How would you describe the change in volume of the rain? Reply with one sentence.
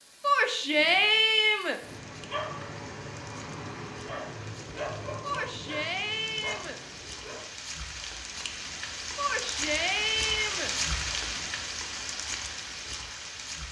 The loudness of the rain goes up.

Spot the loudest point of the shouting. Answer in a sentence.
The volume of the shouting peaks at 1 second.